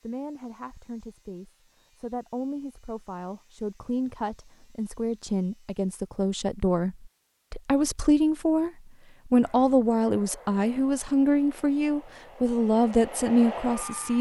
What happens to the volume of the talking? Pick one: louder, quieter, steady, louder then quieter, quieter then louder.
louder.